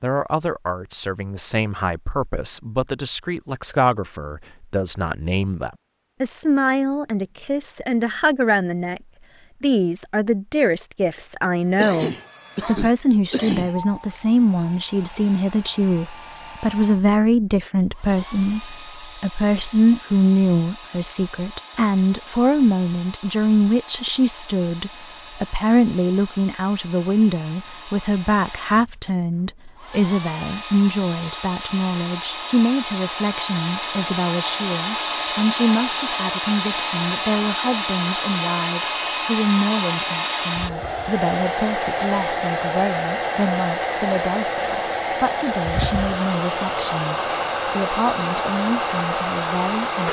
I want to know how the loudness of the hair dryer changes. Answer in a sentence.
The volume of the hair dryer goes up.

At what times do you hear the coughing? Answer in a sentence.
The coughing can be heard from 11.8 to 13.8 s.